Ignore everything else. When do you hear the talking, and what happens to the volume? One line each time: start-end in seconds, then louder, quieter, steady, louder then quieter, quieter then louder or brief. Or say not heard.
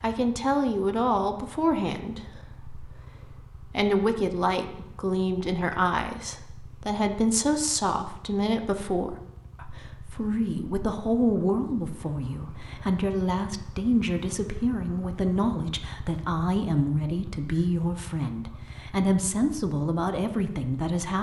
0.0-21.1 steady.